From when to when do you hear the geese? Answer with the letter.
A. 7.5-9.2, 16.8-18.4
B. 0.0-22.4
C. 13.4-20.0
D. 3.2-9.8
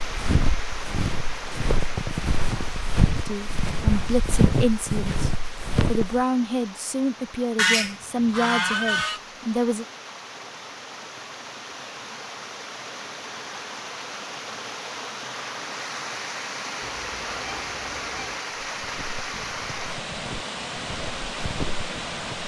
A.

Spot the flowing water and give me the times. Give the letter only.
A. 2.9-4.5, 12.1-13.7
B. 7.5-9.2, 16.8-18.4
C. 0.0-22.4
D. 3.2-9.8
C.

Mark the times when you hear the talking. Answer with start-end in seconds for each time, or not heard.
3.2-9.8.